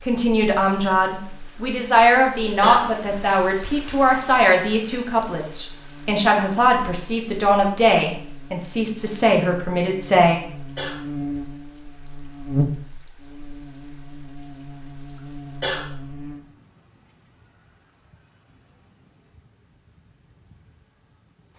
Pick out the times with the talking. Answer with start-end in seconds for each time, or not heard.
0.1-10.4.